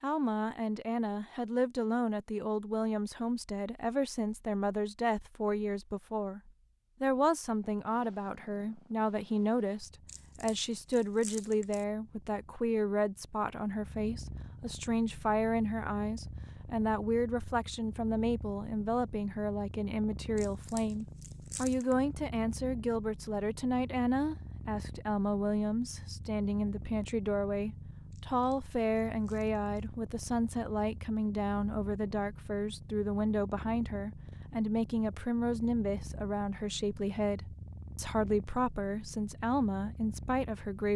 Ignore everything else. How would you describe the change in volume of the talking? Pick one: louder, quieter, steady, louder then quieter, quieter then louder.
steady.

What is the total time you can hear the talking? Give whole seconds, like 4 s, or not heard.
40 s.